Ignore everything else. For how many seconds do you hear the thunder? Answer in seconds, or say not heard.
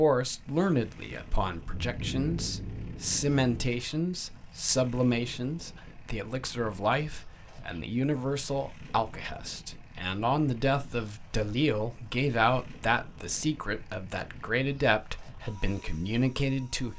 2 s.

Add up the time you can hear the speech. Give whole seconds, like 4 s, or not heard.
17 s.